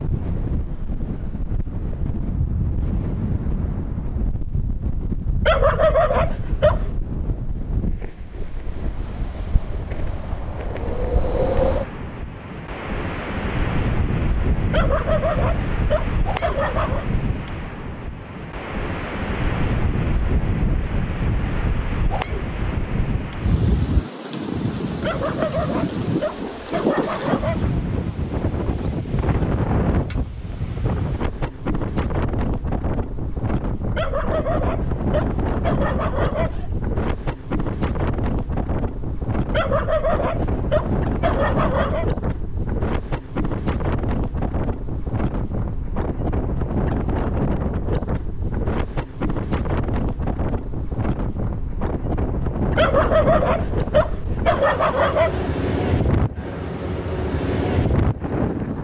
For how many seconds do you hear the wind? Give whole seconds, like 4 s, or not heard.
59 s.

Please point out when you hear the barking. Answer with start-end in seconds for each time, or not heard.
5.5-7.0, 14.7-17.1, 25.0-27.6, 34.0-36.8, 39.5-42.0, 52.8-55.5.